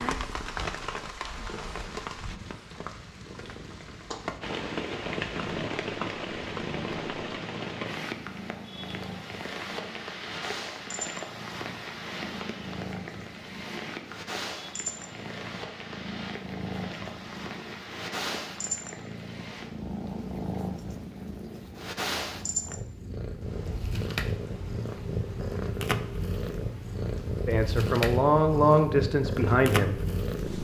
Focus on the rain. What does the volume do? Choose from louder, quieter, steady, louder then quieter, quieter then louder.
quieter.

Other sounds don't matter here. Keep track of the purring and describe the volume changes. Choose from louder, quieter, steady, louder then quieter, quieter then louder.
louder.